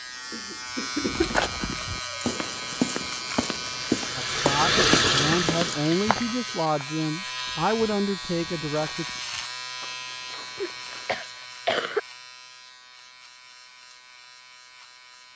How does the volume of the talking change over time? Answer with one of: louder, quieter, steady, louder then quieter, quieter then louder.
steady.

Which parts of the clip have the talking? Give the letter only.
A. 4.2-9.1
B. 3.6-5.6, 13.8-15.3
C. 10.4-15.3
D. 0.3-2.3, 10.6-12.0
A.